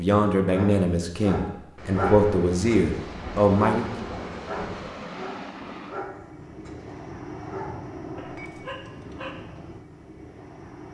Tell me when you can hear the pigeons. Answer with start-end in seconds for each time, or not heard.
not heard.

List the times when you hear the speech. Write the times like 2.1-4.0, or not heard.
0.0-3.9.